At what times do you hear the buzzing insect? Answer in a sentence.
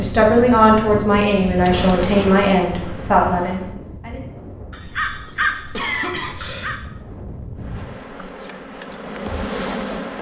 The buzzing insect can be heard from 1.6 to 3.8 s and from 7.5 to 10.1 s.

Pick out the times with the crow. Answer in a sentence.
The crow can be heard from 4.7 to 6.8 s.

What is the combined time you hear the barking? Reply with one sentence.
The barking can't be heard in this clip.